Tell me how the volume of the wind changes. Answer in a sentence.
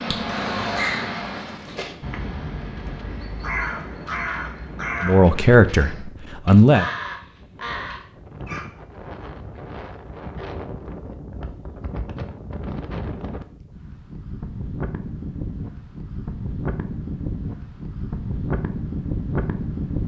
The loudness of the wind goes up.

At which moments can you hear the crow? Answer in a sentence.
The crow can be heard from 0.0 to 8.7 s.